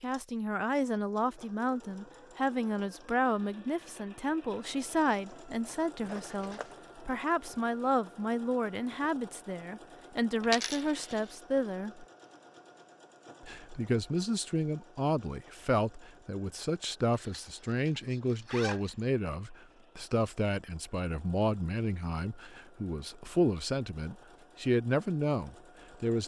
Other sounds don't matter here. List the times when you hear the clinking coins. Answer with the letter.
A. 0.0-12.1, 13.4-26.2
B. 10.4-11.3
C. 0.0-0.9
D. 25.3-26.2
B.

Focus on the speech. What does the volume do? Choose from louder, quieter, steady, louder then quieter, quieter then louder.
steady.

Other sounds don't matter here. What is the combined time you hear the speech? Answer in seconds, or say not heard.
25 s.